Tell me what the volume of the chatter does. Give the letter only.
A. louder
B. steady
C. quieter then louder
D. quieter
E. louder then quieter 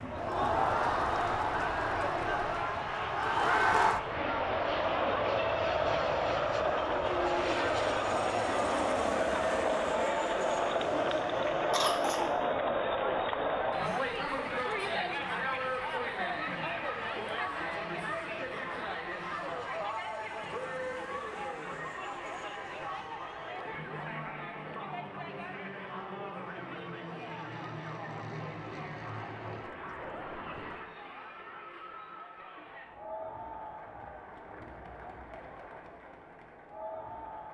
D.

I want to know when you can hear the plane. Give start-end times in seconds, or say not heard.
0.0-30.9.